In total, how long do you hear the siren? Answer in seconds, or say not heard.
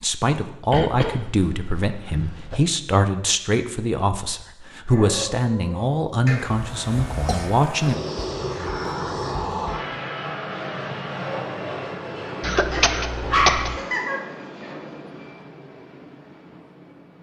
not heard.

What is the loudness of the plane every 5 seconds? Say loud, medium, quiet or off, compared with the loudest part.
off, loud, loud, quiet.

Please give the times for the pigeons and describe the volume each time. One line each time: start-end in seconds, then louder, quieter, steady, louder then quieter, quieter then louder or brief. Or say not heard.
not heard.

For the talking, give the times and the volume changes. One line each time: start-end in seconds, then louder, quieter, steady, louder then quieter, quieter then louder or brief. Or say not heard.
0.0-8.0 steady.